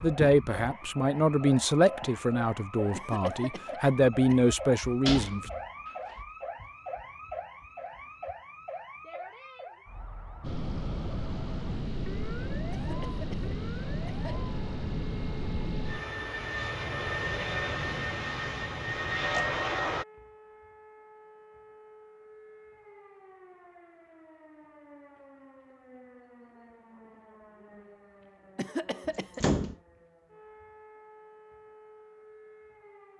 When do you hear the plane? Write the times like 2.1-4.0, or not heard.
10.4-20.1.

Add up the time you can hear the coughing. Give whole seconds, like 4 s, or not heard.
4 s.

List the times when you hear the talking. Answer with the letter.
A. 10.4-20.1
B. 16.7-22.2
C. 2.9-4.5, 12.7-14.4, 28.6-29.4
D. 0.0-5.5
D.